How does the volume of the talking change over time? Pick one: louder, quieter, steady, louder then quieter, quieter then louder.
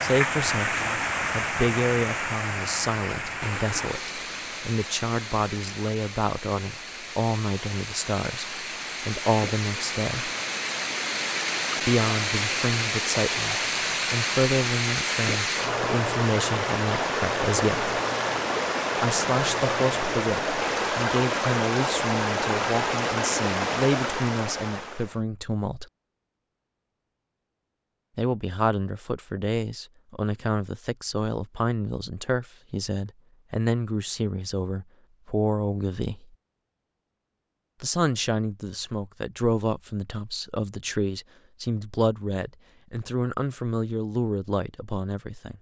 steady.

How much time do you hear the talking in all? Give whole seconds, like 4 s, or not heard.
39 s.